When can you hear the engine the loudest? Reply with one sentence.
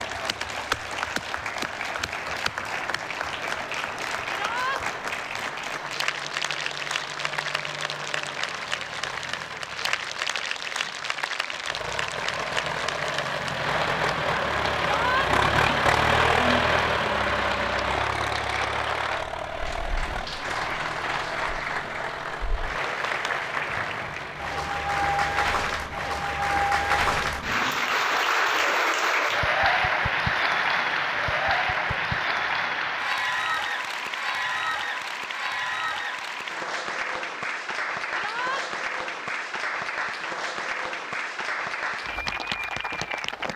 The loudest moment of the engine is at 16 seconds.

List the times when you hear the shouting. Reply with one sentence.
The shouting can be heard from 4.3 to 4.8 s, from 14.9 to 15.3 s and from 38.1 to 38.6 s.